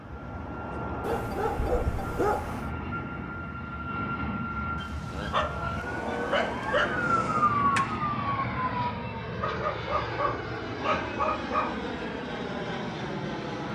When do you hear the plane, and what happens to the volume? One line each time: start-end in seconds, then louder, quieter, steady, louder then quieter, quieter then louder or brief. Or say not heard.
0.0-13.6 steady.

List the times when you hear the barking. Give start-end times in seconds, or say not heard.
1.0-2.7, 4.8-7.1, 9.4-11.8.